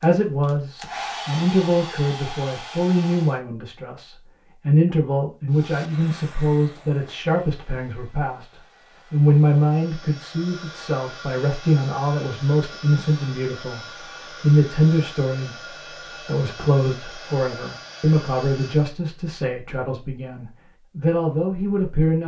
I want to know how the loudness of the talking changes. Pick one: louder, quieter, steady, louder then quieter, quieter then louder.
steady.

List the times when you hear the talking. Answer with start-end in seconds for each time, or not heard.
0.0-22.2.